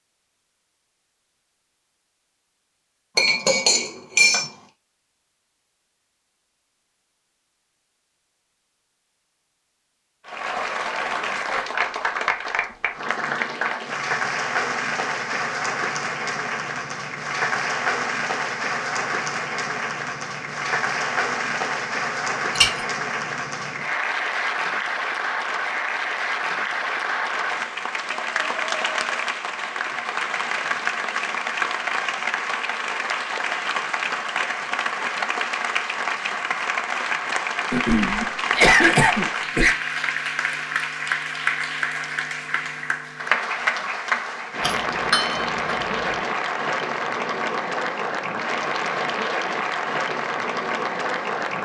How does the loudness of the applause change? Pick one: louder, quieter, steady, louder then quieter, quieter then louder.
steady.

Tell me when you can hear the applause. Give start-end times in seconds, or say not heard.
10.2-51.6.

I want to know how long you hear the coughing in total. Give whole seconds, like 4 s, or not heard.
2 s.